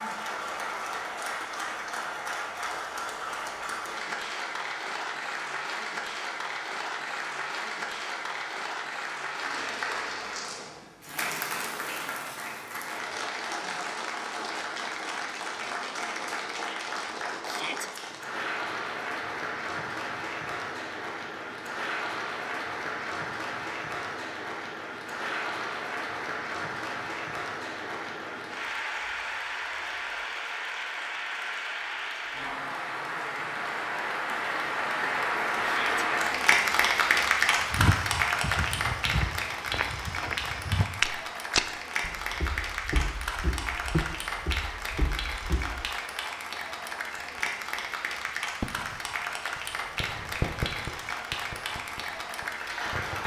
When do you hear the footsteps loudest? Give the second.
41 s.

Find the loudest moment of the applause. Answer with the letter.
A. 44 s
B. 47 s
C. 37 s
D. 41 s
C.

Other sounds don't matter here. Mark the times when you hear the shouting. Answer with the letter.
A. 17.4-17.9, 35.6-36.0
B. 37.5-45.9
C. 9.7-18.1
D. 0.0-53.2
A.